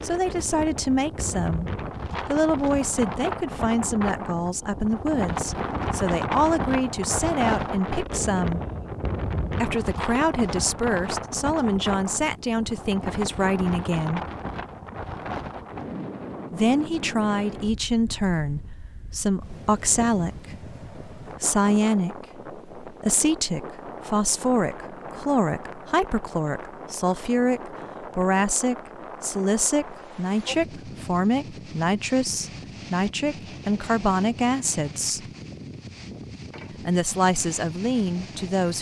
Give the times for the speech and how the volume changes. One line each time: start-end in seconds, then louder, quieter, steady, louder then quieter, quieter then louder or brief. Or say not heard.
0.0-8.6 steady
9.6-14.2 steady
16.5-35.2 steady
36.8-38.7 brief.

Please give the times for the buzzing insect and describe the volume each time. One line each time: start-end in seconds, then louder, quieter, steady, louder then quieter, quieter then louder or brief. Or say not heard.
not heard.